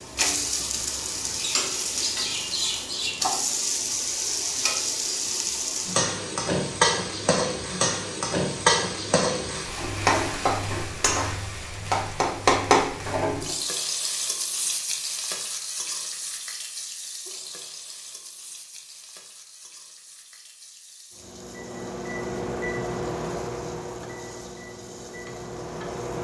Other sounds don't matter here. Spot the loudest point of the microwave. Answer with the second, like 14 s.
23 s.